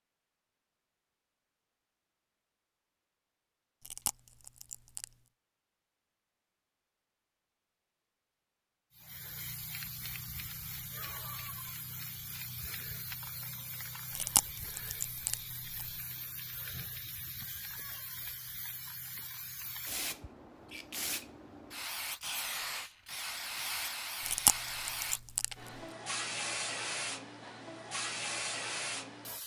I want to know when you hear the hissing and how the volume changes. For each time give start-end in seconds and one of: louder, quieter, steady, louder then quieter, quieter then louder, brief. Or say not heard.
8.9-29.4 louder.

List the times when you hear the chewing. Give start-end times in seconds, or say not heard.
3.9-5.1, 14.2-15.8, 24.2-25.5.